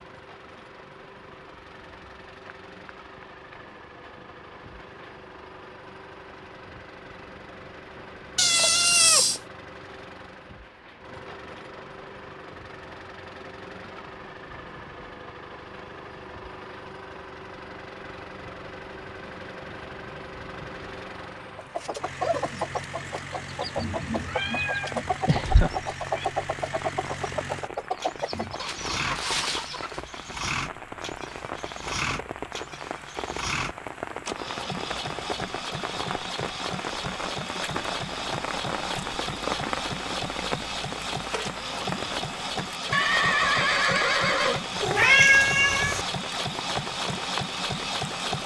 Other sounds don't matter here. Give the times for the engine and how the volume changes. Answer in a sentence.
You can hear the engine from 0.0 to 48.4 s, getting louder.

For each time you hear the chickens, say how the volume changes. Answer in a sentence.
The chickens can be heard from 21.6 to 30.1 s, at a steady volume.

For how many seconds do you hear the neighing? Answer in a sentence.
The neighing can be heard for 2 seconds in total.